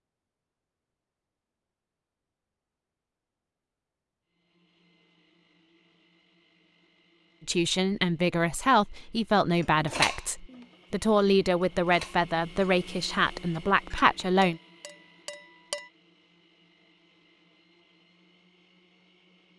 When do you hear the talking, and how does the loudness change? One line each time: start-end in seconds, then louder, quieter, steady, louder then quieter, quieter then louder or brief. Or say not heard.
7.5-14.6 steady.